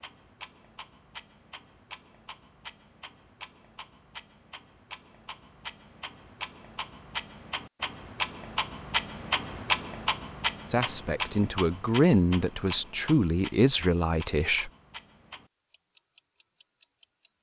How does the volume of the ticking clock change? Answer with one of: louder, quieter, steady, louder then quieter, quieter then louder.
louder then quieter.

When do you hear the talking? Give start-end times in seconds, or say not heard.
10.7-14.7.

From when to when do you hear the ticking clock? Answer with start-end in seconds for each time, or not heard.
0.0-17.3.